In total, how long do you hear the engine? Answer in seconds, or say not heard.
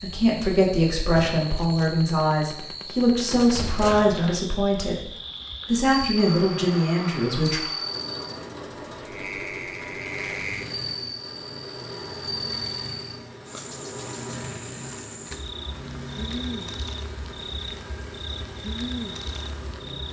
14 s.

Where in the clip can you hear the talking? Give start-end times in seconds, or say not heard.
0.0-7.6.